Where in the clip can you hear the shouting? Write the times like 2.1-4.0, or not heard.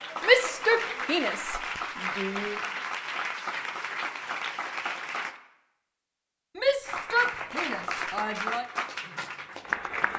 0.2-2.5, 6.5-8.7.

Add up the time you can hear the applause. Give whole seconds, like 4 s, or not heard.
9 s.